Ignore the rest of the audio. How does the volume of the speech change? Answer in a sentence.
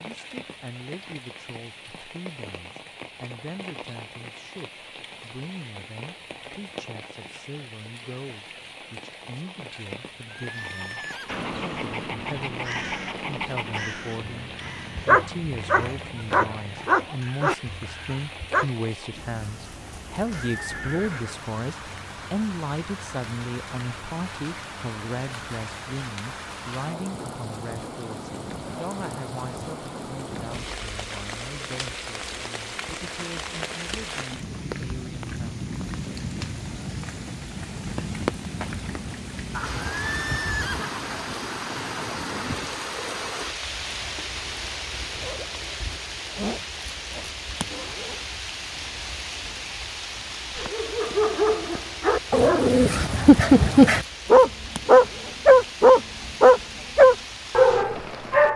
The volume of the speech goes up, then down.